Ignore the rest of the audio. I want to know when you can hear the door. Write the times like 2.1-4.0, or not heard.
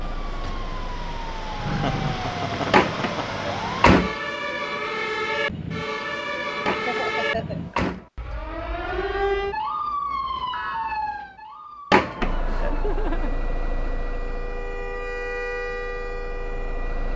2.7-4.2, 6.7-8.1, 11.9-12.8.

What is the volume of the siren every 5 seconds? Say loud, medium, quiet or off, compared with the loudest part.
loud, loud, medium, medium.